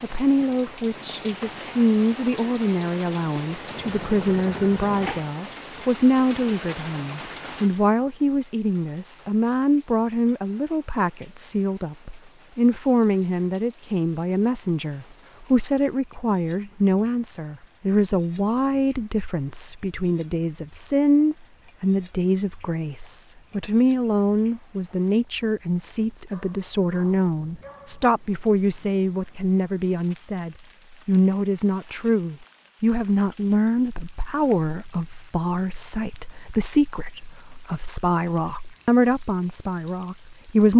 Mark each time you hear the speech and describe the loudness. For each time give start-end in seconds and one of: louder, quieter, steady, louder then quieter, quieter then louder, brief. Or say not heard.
0.0-40.7 steady.